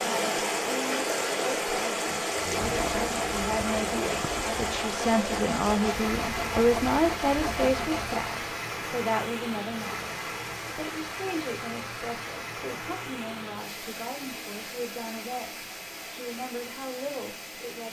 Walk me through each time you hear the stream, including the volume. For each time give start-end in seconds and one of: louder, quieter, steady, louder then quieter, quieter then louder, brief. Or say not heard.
0.0-17.8 quieter.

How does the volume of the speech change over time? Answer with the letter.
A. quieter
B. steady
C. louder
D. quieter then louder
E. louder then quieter
E.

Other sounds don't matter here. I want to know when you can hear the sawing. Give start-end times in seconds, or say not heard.
2.3-8.2.